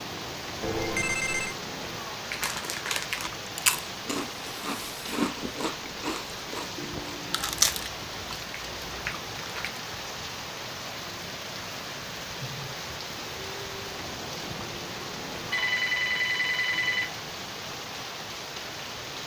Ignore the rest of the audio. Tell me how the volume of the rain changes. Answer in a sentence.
The loudness of the rain stays about the same.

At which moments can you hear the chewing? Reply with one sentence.
You can hear the chewing from 2.2 to 9.8 s.